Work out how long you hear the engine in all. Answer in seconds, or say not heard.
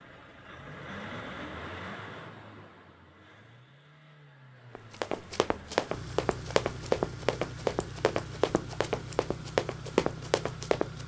11 s.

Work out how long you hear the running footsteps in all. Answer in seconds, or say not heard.
6 s.